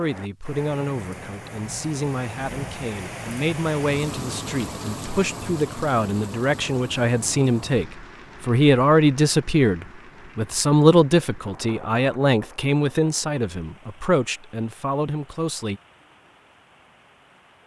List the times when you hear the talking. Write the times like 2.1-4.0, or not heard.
0.0-15.8.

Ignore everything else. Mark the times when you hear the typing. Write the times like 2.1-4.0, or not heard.
not heard.